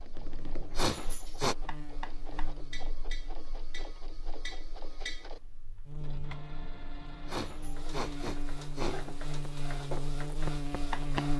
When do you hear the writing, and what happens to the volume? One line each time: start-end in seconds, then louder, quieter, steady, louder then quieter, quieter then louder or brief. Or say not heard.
not heard.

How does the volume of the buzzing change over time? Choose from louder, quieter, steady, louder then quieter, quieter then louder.
quieter then louder.